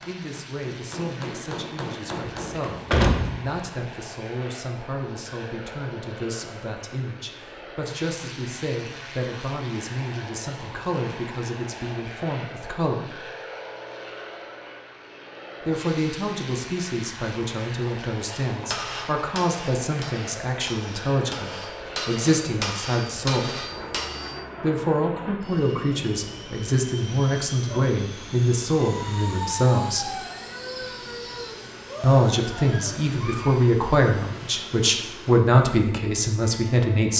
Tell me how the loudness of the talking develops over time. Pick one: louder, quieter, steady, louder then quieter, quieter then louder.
louder.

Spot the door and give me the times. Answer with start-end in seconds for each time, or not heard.
2.2-3.5.